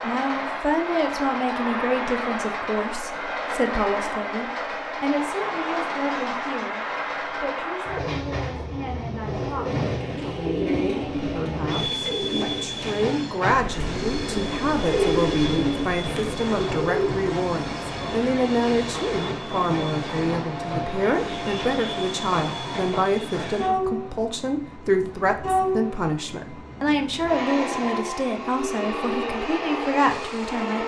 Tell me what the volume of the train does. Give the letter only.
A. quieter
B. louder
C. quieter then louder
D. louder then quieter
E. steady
E.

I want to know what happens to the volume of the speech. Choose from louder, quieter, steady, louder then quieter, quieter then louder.
quieter then louder.